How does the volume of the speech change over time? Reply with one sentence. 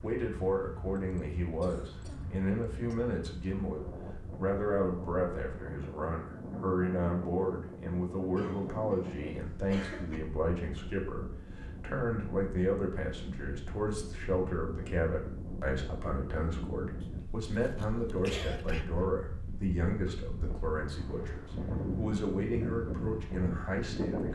The volume of the speech stays about the same.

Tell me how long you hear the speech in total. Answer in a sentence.
You can hear the speech for 24 seconds altogether.